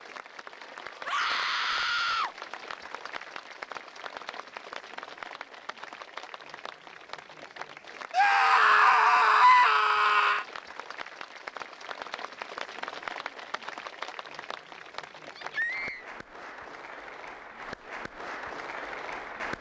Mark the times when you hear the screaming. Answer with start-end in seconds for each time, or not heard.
1.1-2.4, 8.1-10.4, 15.3-16.1.